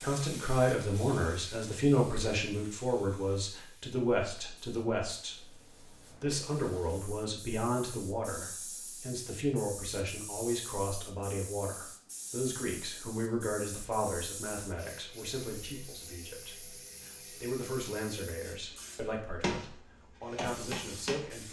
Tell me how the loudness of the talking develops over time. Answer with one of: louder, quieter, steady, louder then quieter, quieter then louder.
quieter.